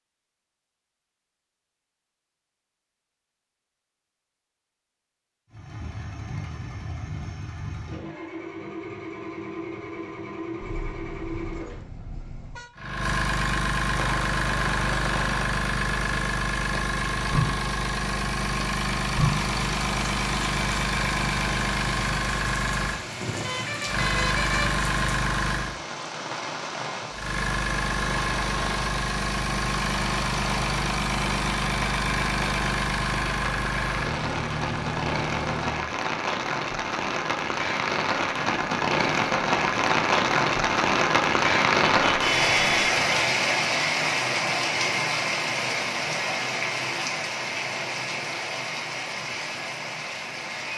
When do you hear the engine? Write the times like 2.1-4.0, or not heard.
5.5-25.8, 27.1-35.9.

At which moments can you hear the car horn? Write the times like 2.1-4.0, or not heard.
10.6-12.7, 23.2-24.8, 42.0-43.0.